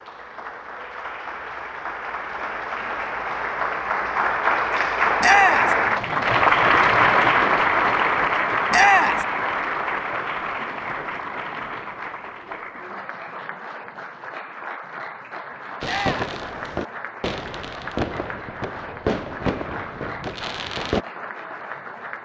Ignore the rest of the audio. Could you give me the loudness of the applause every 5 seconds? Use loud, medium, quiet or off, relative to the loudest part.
medium, loud, quiet, quiet, quiet.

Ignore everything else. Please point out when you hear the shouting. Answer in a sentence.
The shouting can be heard from 5.2 to 5.8 s, from 8.7 to 9.2 s and from 15.8 to 16.4 s.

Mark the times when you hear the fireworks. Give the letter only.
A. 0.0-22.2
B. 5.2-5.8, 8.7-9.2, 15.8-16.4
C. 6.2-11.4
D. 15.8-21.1
D.